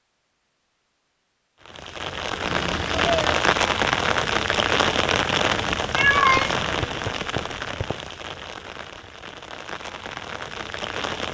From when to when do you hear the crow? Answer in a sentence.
You can't hear the crow here.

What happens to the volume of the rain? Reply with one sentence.
The volume of the rain goes down.